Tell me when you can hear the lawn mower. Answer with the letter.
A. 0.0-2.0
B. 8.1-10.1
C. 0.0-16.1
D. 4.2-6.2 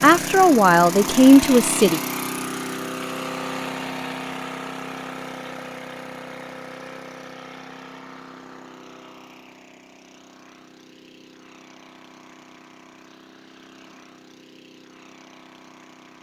C.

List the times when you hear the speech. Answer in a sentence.
The speech can be heard from 0.0 to 2.0 s.